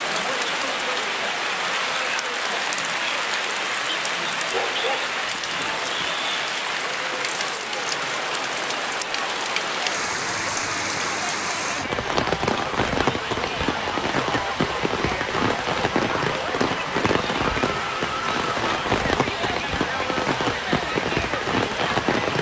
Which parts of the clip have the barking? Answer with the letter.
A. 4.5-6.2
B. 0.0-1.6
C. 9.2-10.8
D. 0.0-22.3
A.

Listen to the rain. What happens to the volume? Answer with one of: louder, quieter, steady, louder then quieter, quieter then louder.
steady.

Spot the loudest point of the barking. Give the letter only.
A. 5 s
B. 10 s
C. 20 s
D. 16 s
A.